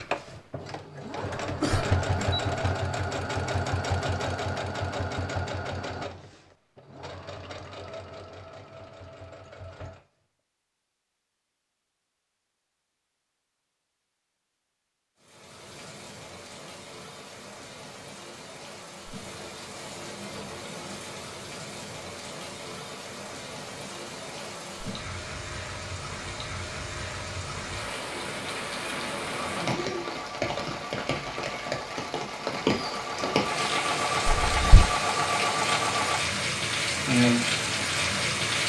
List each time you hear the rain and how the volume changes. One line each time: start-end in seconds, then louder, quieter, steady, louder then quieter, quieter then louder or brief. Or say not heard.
15.2-38.6 louder.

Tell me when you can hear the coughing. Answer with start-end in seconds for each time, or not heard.
1.6-2.3, 34.2-34.9.